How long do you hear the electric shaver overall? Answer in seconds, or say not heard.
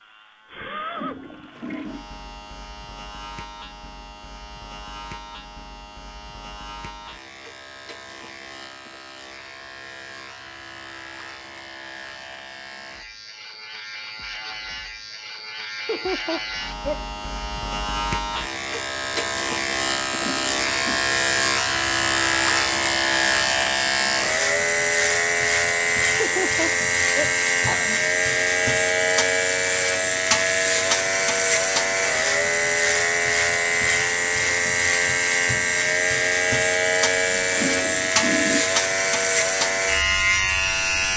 41 s.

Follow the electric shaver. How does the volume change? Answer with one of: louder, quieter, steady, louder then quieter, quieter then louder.
louder.